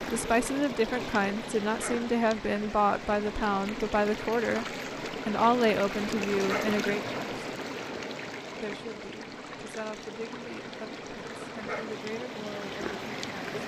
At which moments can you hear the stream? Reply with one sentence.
You can hear the stream from 0.0 to 13.6 s.